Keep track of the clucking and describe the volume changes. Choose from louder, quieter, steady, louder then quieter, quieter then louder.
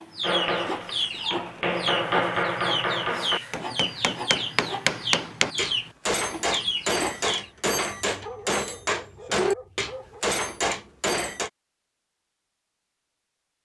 steady.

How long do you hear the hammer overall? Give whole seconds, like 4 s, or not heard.
11 s.